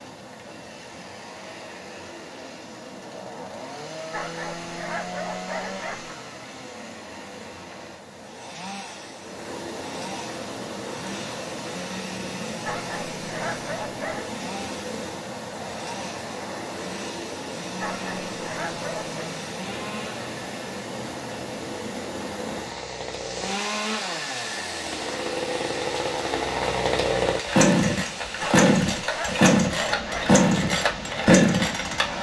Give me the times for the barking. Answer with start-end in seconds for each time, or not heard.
4.1-6.2, 12.7-14.4, 17.8-19.1, 28.4-30.4.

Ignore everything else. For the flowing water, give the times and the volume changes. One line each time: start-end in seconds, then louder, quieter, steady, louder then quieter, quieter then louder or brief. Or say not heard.
0.0-32.1 louder.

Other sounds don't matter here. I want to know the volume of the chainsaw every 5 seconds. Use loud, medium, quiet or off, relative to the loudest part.
quiet, quiet, quiet, quiet, quiet, loud, loud.